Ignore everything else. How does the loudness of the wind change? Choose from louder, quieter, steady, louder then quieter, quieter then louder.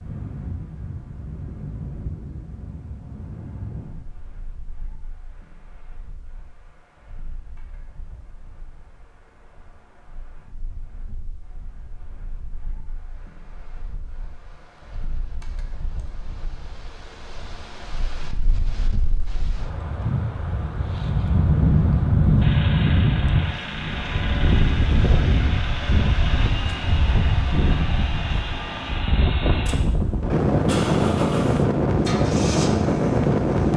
quieter then louder.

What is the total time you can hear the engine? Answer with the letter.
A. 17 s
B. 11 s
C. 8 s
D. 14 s
B.